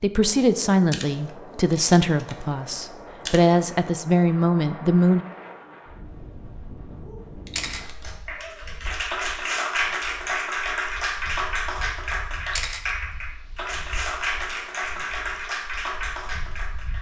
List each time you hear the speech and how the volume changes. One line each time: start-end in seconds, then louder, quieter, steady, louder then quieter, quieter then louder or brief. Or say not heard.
0.0-5.2 quieter then louder.